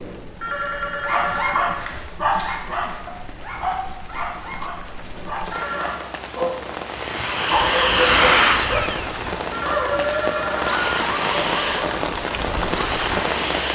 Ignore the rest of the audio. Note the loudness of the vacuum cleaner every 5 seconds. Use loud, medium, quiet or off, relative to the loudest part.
off, loud, medium.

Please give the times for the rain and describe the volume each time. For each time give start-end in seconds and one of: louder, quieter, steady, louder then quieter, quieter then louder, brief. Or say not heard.
0.0-13.6 louder.